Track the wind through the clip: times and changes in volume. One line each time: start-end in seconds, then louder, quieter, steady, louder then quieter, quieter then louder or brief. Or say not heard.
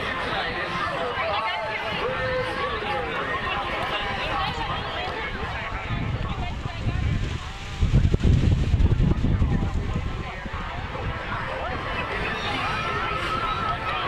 0.0-14.0 louder then quieter.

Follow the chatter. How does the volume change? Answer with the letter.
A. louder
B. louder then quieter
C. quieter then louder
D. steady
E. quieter
C.